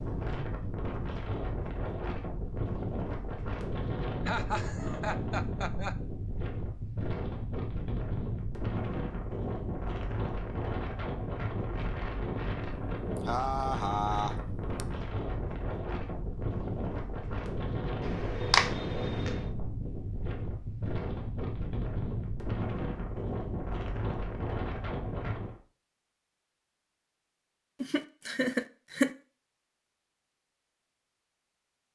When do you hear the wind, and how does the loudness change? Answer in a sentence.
You can hear the wind from 0.0 to 25.6 s, at a steady volume.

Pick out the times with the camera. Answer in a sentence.
The camera can be heard from 18.0 to 19.4 s.